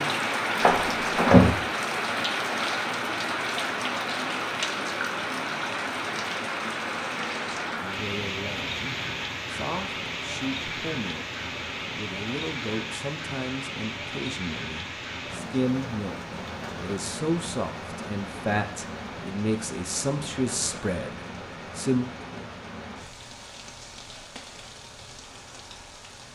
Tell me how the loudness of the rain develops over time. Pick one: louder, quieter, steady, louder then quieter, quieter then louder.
quieter.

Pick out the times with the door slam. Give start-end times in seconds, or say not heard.
0.6-1.6.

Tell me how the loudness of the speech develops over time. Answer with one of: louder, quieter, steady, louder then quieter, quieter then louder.
louder.